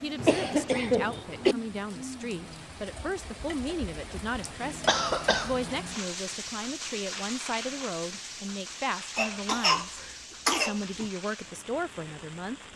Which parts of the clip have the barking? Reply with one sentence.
You can't hear the barking here.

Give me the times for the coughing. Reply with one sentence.
You can hear the coughing from 0.1 to 1.6 s, from 4.4 to 5.6 s and from 9.2 to 11.1 s.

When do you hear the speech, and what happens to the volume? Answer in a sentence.
You can hear the speech from 0.0 to 12.7 s, at a steady volume.